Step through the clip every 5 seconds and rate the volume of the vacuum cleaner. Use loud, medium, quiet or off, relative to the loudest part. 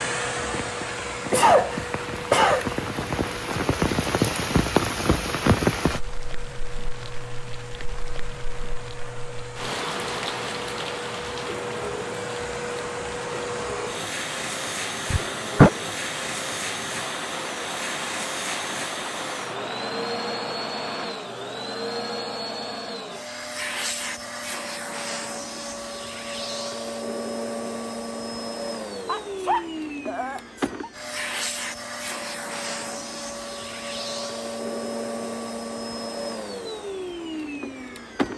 loud, medium, loud, loud, loud, loud, loud, loud.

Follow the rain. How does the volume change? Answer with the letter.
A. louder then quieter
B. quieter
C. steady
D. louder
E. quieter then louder
B.